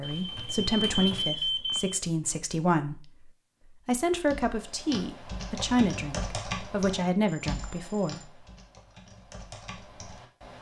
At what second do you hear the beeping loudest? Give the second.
1 s.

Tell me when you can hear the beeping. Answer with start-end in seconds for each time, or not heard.
0.0-2.0, 7.2-8.3.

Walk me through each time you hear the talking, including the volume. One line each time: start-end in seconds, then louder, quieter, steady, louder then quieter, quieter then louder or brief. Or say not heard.
0.0-8.2 steady.